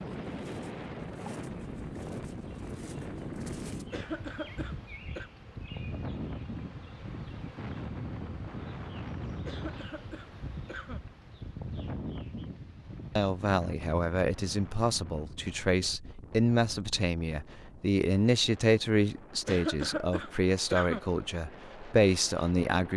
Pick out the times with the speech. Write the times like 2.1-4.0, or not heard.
13.2-22.9.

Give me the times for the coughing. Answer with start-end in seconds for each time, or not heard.
3.9-5.3, 9.4-11.0, 19.4-21.0.